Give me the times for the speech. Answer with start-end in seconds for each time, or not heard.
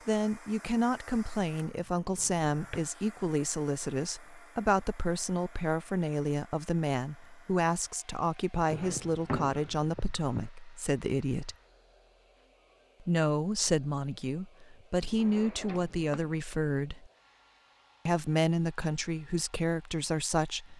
0.1-11.6, 13.0-17.1, 18.1-20.7.